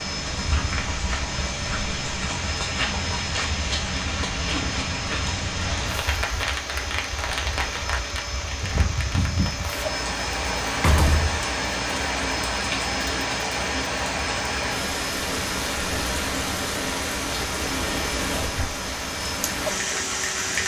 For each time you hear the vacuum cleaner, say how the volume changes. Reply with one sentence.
You can hear the vacuum cleaner from 0.0 to 20.6 s, at a steady volume.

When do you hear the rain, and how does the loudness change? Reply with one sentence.
The rain can be heard from 0.0 to 20.6 s, at a steady volume.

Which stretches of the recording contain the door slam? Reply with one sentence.
You can hear the door slam from 10.7 to 11.4 s.